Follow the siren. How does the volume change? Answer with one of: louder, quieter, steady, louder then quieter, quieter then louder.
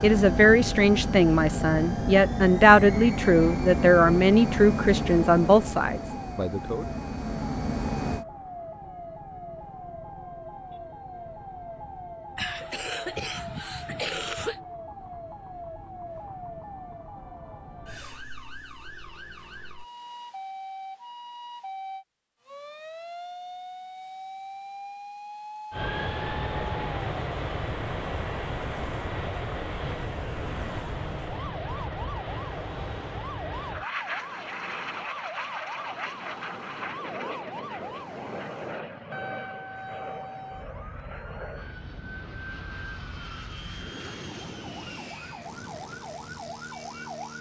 steady.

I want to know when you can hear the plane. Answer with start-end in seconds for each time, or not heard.
0.0-8.2, 25.7-47.3.